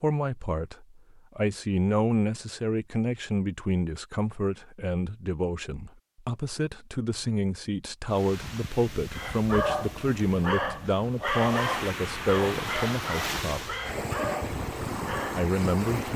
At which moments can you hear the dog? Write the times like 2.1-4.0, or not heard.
9.1-15.4.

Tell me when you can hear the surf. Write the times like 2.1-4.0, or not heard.
8.1-16.1.